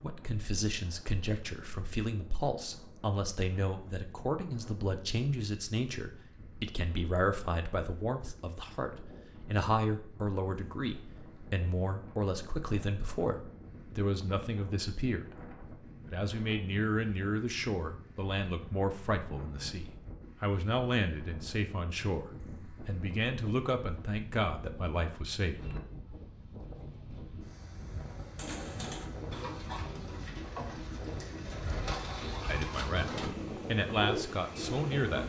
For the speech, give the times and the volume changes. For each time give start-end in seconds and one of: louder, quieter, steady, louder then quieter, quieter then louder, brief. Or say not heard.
0.0-25.8 steady
32.5-35.2 brief.